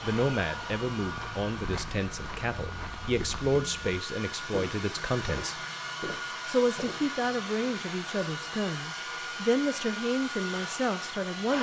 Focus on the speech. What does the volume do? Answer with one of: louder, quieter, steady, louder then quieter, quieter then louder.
steady.